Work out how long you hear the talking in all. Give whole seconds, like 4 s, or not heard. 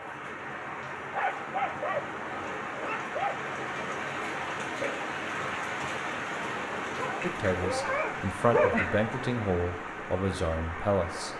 4 s.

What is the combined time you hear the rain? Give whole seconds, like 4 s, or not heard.
11 s.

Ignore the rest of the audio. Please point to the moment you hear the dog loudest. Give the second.
9 s.